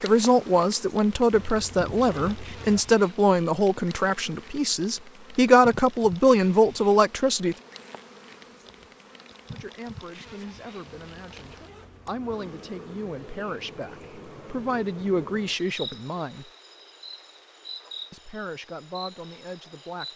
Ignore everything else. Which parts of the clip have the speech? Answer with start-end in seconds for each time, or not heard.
0.0-7.5, 9.5-16.4, 18.1-20.1.